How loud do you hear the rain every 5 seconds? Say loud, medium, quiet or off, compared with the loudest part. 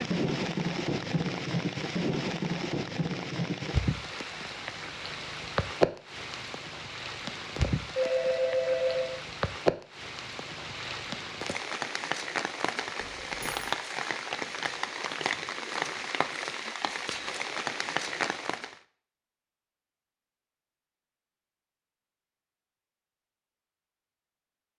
loud, loud, loud, loud, off.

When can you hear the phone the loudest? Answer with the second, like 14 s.
9 s.